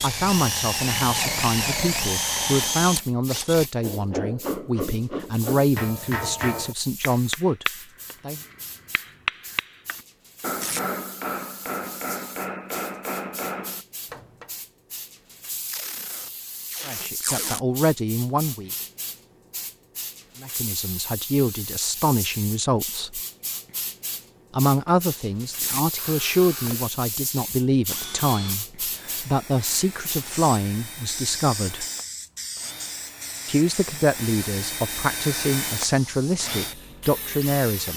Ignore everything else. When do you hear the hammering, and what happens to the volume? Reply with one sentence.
The hammering can be heard from 3.8 to 14.5 s, at a steady volume.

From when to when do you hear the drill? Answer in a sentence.
The drill can be heard from 0.0 to 3.7 s and from 25.9 to 37.9 s.